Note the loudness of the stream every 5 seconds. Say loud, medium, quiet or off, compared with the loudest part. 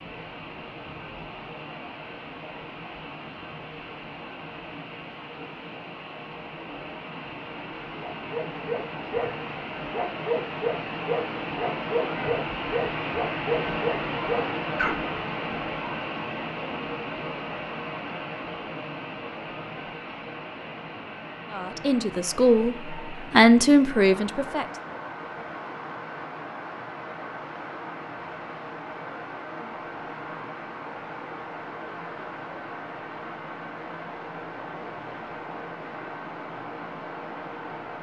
medium, medium, loud, loud, medium, medium, medium, medium.